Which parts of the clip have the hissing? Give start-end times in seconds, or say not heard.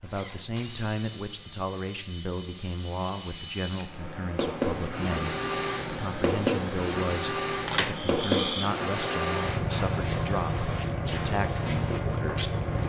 4.3-12.8.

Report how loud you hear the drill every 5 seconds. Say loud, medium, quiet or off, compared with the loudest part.
medium, loud, loud.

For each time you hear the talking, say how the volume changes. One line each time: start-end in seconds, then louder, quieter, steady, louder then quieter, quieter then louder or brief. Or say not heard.
0.0-12.7 steady.